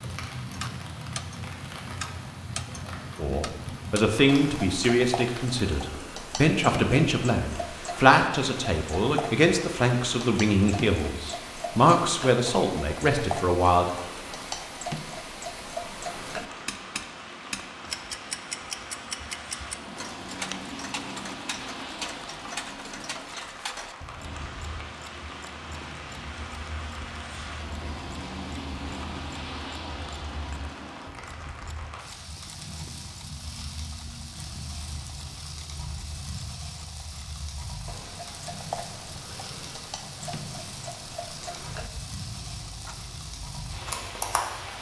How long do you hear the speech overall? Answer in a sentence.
The speech can be heard for 11 seconds in total.